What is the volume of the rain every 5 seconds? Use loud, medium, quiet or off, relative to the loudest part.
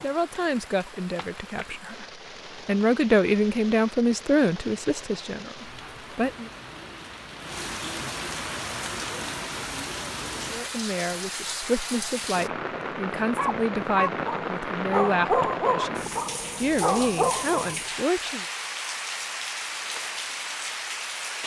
medium, loud, loud, loud, loud.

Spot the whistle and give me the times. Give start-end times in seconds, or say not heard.
not heard.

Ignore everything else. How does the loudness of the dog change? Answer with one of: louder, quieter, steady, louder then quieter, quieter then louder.
quieter then louder.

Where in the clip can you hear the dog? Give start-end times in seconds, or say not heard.
13.3-17.8.